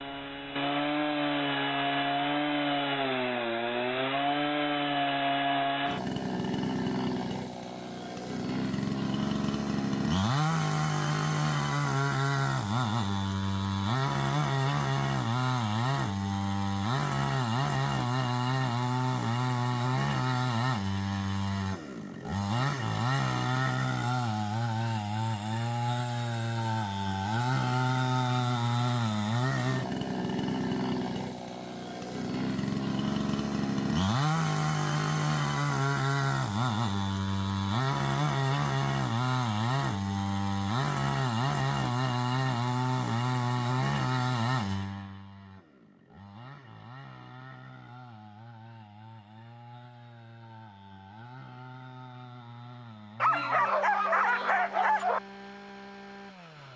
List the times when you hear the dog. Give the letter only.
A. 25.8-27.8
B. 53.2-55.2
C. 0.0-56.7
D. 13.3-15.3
B.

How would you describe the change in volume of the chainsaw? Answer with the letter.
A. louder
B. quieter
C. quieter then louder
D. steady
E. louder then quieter
B.